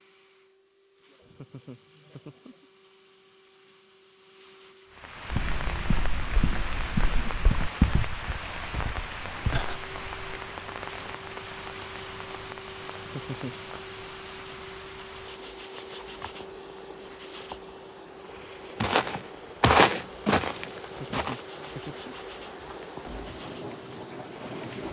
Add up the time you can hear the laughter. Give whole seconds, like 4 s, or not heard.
4 s.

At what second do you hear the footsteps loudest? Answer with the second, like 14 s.
20 s.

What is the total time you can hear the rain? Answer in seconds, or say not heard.
20 s.